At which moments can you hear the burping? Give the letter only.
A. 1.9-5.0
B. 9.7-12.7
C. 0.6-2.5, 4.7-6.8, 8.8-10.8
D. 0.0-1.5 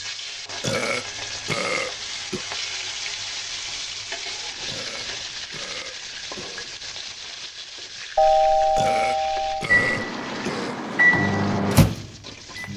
C.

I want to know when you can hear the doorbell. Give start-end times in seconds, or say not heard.
8.2-9.7.